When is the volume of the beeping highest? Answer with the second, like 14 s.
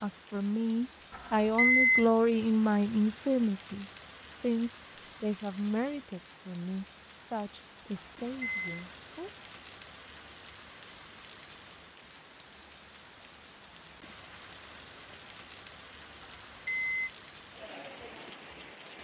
2 s.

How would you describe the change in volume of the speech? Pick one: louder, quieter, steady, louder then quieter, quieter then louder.
quieter.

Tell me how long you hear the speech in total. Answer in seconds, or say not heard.
9 s.